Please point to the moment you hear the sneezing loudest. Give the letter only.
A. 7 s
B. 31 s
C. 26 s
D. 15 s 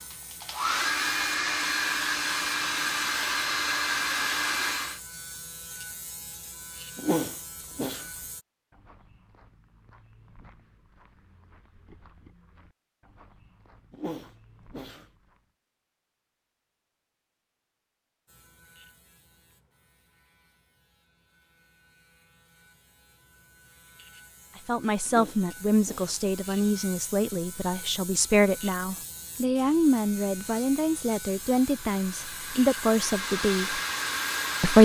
A.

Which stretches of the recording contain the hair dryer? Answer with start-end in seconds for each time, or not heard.
0.1-5.0, 31.2-34.8.